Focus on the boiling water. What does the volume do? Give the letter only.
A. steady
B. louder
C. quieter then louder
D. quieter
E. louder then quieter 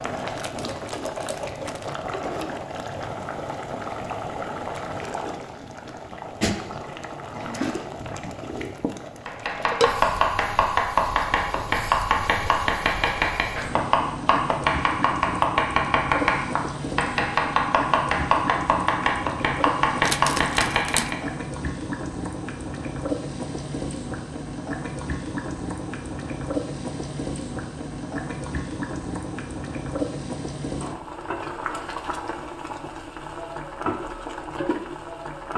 A.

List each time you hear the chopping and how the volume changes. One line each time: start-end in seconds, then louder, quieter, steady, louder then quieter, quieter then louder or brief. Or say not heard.
9.2-21.1 steady.